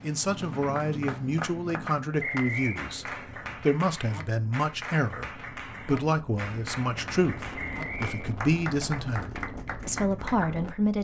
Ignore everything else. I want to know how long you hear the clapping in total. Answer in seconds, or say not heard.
10 s.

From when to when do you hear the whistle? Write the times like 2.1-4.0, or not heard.
2.2-2.8, 7.5-8.3.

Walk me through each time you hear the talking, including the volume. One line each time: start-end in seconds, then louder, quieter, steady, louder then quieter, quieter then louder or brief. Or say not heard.
0.0-10.9 steady.